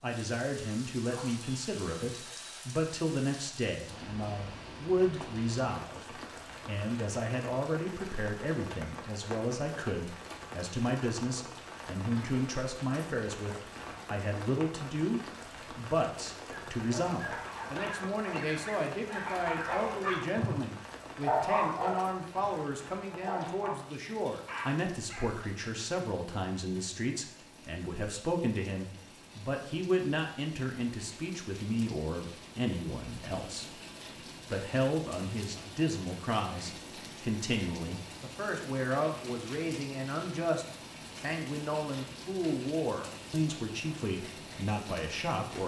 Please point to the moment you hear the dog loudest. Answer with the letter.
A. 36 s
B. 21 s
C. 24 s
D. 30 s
B.